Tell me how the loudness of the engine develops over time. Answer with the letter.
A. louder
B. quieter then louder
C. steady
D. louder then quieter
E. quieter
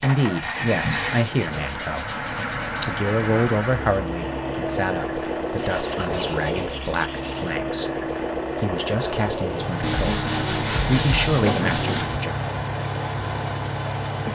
C.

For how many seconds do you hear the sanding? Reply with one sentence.
You can hear the sanding for 7 seconds altogether.